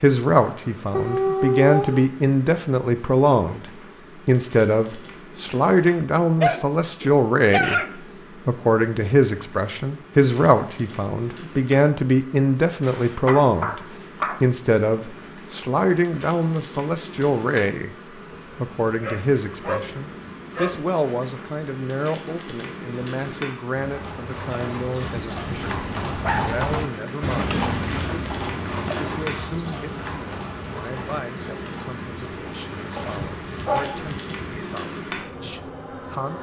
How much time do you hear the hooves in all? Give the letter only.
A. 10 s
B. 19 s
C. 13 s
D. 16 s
A.